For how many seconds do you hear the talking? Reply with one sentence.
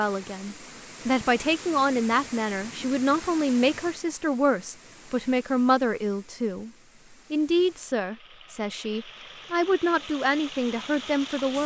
You can hear the talking for 11 seconds altogether.